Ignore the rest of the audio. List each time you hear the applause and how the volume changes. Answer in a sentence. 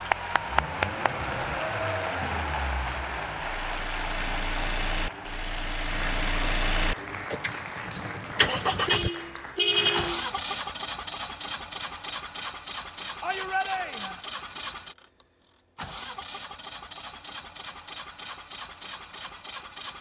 You can hear the applause from 0.0 to 10.2 s, getting quieter.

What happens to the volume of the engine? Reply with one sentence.
The loudness of the engine goes up, then down.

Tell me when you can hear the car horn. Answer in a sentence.
The car horn can be heard from 8.8 to 10.2 s.